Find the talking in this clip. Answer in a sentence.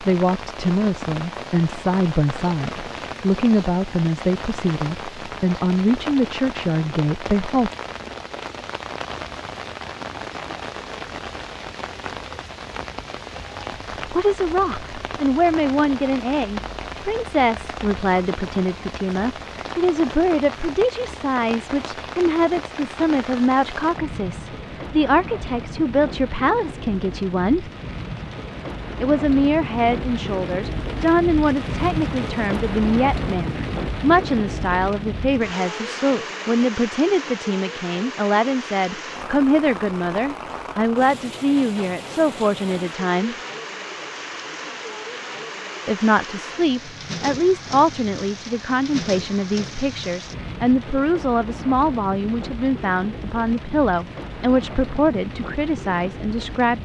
The talking can be heard from 0.0 to 7.7 s, from 14.0 to 27.7 s, from 29.0 to 43.4 s and from 45.9 to 56.7 s.